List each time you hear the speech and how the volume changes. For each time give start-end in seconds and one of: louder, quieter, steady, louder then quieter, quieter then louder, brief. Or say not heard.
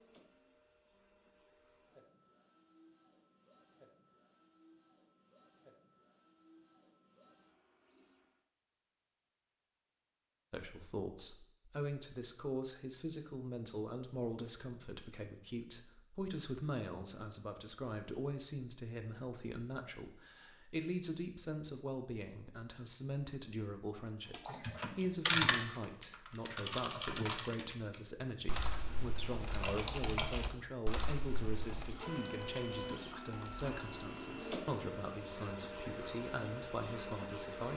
10.5-37.7 steady.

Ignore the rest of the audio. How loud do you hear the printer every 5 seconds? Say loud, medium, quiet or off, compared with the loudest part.
quiet, quiet, off, off, off, off, loud, loud.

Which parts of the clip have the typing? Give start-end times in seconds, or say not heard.
24.3-25.6, 26.2-34.0.